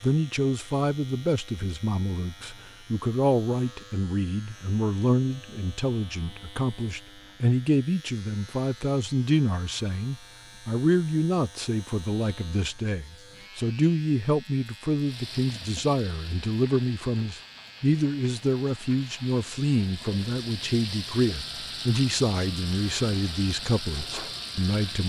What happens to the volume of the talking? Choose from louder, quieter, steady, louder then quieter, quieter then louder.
steady.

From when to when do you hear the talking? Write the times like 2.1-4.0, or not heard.
0.0-25.0.